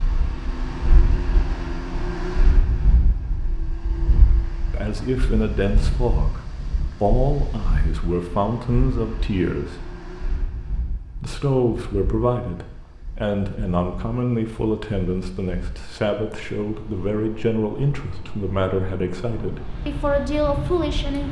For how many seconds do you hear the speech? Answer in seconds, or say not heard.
15 s.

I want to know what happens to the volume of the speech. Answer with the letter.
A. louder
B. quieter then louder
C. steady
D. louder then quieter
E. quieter
C.